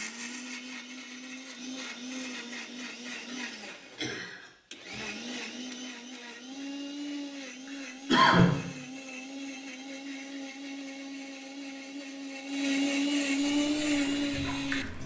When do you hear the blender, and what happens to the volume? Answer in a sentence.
The blender can be heard from 0.0 to 15.0 s, getting louder.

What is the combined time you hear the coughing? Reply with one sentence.
You can hear the coughing for 2 seconds altogether.